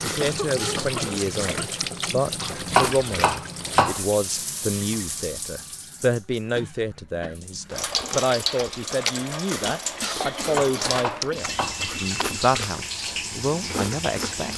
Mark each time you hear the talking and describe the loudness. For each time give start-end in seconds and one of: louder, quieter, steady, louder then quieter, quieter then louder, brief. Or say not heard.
0.0-14.5 steady.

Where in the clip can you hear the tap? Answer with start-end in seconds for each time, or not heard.
0.0-14.5.